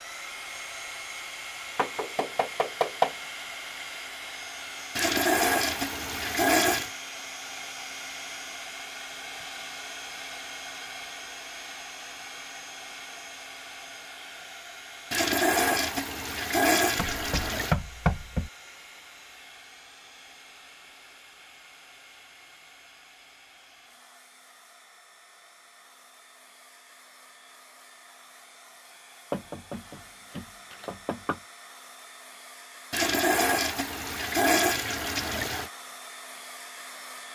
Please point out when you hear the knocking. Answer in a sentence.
The knocking can be heard from 1.8 to 3.1 s, from 16.9 to 18.5 s and from 29.3 to 31.4 s.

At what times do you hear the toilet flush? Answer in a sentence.
The toilet flush can be heard from 5.0 to 6.9 s, from 15.1 to 17.8 s and from 32.9 to 35.7 s.